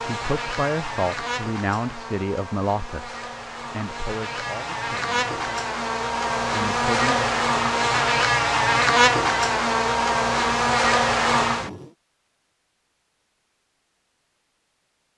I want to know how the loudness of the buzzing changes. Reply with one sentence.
The loudness of the buzzing goes up.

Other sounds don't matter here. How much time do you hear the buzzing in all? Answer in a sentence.
You can hear the buzzing for 12 seconds altogether.